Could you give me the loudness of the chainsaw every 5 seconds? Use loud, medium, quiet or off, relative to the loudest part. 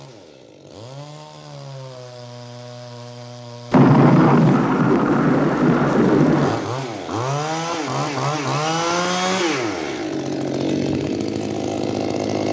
quiet, loud, loud.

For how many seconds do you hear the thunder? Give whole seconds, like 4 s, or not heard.
3 s.